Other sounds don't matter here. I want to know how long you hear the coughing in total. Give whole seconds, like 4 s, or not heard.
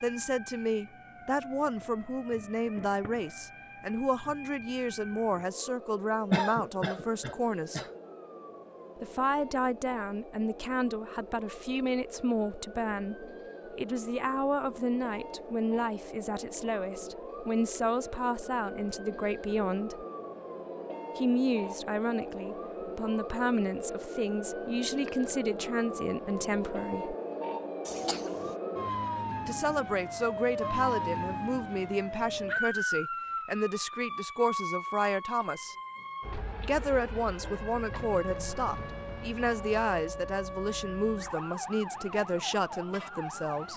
2 s.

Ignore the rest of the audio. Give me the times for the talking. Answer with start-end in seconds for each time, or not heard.
0.0-7.8, 9.0-20.1, 21.1-27.1, 29.4-35.8, 36.6-43.7.